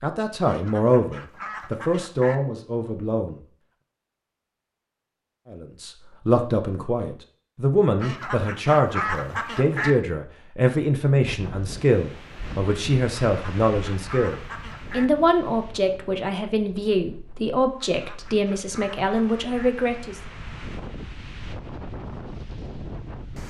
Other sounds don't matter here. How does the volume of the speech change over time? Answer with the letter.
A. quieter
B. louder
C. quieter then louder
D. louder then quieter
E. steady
E.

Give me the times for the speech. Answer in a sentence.
You can hear the speech from 0.0 to 3.4 s and from 5.5 to 20.2 s.